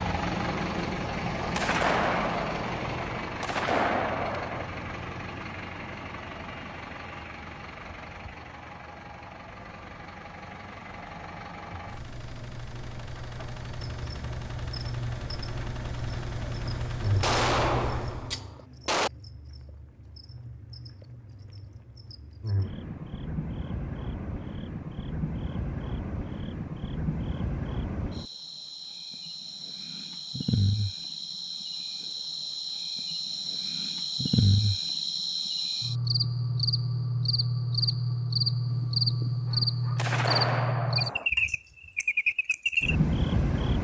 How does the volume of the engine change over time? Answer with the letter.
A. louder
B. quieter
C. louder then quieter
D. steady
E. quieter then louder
E.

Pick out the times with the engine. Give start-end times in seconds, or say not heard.
0.0-18.4.